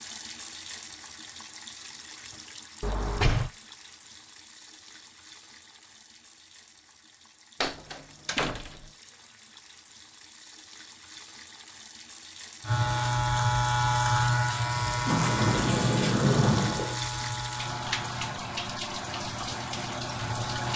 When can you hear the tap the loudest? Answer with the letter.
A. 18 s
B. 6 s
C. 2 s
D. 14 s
A.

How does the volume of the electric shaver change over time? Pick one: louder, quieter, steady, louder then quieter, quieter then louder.
quieter.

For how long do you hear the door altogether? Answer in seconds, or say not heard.
4 s.